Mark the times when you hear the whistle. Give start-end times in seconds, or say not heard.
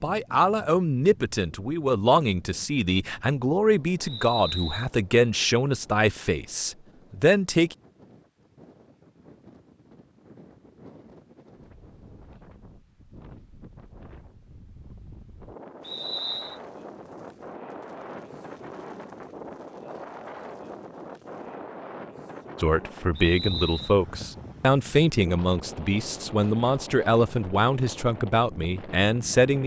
4.0-4.9, 15.8-16.6, 23.1-23.9.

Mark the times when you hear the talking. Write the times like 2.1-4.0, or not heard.
0.0-7.8, 22.6-29.6.